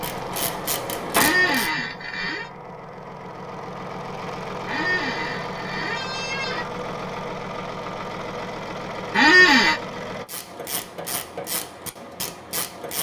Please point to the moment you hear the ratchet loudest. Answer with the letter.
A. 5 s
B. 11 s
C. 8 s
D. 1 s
D.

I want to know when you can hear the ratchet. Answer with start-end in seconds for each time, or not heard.
0.0-1.7, 10.2-12.9.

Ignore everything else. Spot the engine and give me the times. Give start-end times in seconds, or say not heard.
0.0-10.2.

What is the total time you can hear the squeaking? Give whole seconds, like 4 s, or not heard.
4 s.